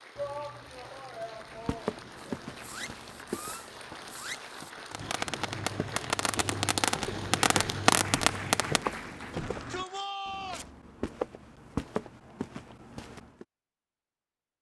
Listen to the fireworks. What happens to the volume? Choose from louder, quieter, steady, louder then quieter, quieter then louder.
louder.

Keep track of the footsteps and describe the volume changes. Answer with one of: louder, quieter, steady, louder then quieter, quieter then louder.
quieter then louder.